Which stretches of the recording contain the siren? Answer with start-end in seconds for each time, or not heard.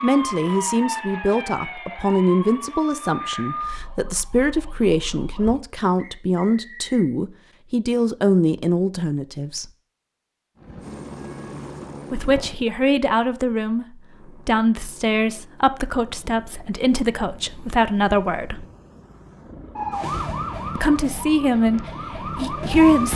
0.0-5.5, 19.8-23.1.